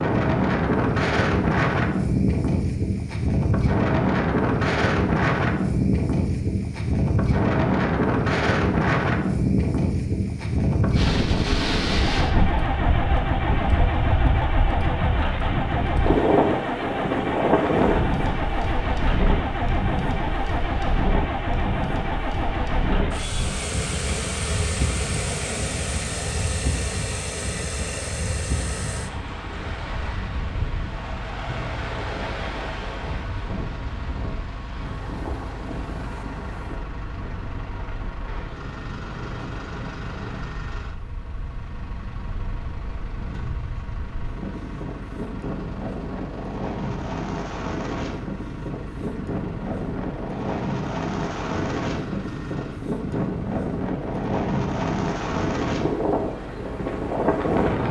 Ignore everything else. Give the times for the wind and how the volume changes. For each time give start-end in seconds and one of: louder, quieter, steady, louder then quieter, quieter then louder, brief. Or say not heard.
0.0-57.8 quieter then louder.